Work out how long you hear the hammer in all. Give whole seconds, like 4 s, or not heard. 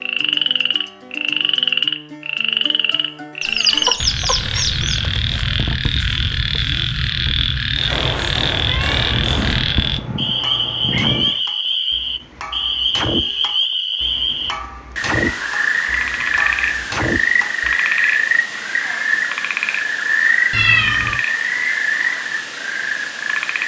10 s.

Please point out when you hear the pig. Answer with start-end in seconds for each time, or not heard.
not heard.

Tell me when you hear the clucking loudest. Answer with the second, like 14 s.
4 s.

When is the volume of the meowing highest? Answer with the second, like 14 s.
21 s.